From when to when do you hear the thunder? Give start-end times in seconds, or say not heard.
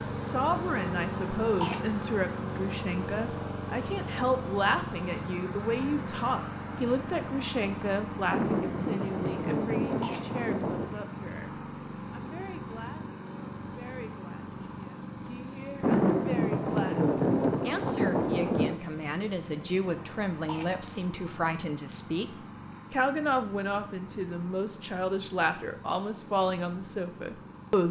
8.3-10.9, 15.8-18.8.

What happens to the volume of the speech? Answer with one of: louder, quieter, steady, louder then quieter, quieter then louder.
quieter then louder.